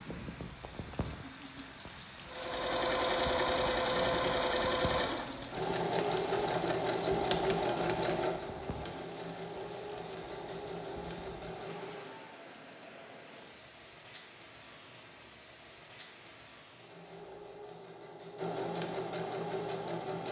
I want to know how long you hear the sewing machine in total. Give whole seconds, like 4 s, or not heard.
14 s.